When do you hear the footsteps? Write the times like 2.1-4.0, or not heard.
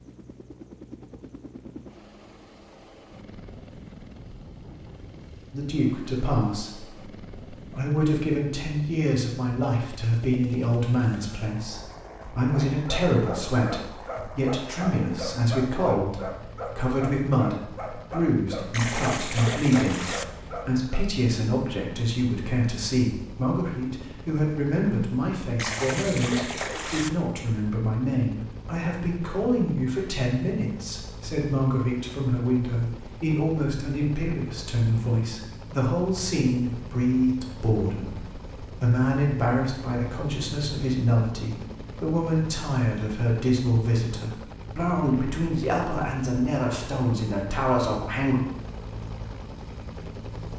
not heard.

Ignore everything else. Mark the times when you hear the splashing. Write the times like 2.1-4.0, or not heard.
18.7-20.2, 25.6-27.1.